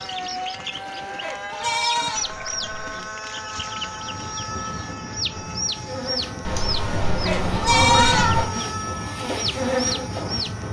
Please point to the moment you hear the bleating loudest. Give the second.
8 s.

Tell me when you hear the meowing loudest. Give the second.
8 s.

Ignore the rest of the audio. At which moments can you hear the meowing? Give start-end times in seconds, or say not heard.
2.1-3.1, 6.5-8.4.